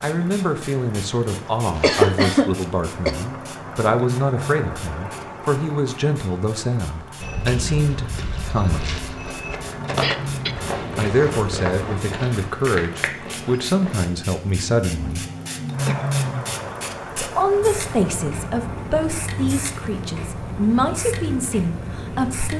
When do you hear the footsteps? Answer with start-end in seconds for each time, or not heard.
7.2-14.1.